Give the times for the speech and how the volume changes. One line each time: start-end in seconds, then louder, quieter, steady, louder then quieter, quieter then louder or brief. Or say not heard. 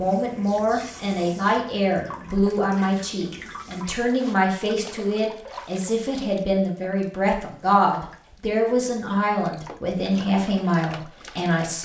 0.0-11.8 steady.